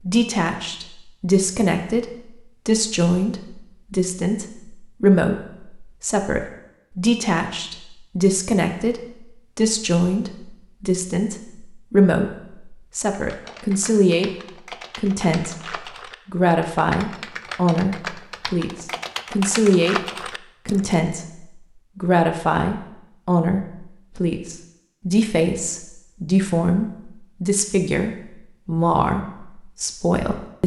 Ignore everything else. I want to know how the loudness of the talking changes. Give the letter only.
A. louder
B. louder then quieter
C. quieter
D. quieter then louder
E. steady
E.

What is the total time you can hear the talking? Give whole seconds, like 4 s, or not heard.
29 s.